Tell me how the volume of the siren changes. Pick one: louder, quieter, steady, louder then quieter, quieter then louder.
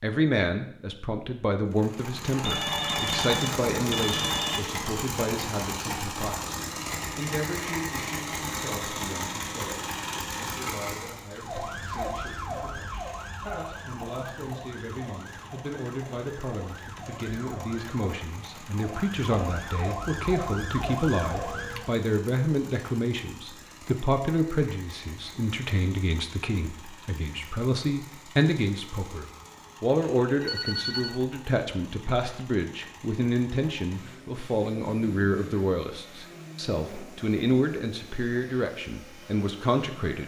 quieter then louder.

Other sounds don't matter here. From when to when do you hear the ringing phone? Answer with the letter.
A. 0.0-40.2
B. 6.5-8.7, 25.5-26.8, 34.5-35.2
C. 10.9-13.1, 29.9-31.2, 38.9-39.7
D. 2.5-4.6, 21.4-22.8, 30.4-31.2
D.